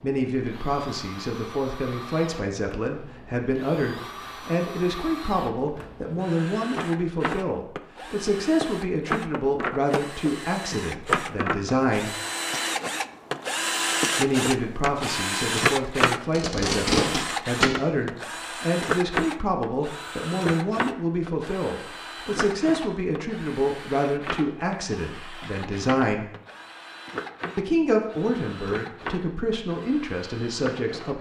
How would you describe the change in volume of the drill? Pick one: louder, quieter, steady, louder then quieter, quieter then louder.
louder then quieter.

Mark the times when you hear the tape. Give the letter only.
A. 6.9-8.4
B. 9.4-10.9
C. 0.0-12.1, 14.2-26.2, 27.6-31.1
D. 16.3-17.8
D.